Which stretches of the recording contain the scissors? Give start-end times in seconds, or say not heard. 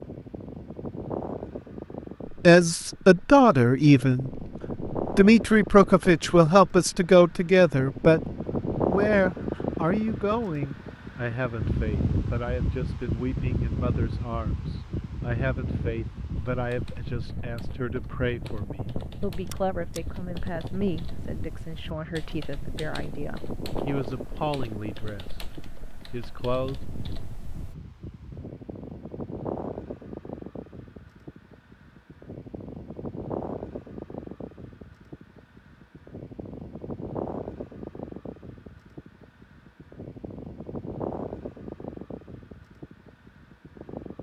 19.4-20.0.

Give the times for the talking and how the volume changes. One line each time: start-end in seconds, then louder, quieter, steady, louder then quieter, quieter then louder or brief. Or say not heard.
2.3-25.4 quieter
26.1-26.8 brief.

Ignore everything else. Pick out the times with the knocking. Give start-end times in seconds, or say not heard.
not heard.